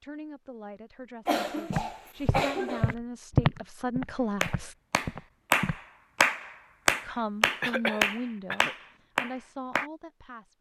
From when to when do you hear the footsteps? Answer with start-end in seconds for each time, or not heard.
1.7-5.8.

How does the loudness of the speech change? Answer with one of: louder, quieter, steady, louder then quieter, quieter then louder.
louder then quieter.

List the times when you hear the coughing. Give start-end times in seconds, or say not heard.
1.2-3.0, 7.6-8.8.